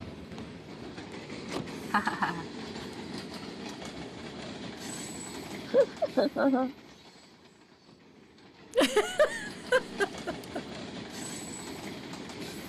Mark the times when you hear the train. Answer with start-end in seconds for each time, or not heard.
0.0-12.6.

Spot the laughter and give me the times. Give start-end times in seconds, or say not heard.
1.9-2.5, 5.7-6.8, 8.8-10.6.